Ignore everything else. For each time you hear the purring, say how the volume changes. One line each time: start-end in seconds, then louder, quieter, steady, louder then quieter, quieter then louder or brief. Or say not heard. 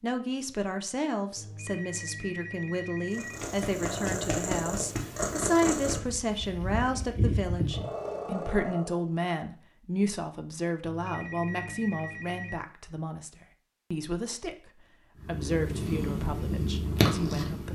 3.1-9.1 steady
15.2-17.6 brief.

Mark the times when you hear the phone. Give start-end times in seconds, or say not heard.
1.4-3.4, 10.8-12.6.